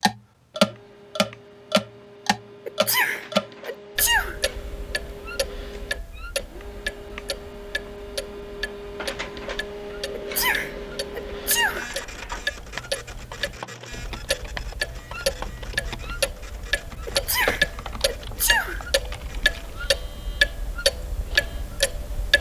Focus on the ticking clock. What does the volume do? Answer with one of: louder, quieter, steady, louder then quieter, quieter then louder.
quieter then louder.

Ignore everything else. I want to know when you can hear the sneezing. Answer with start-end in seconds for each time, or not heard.
2.6-4.3, 10.2-11.9, 17.1-18.9.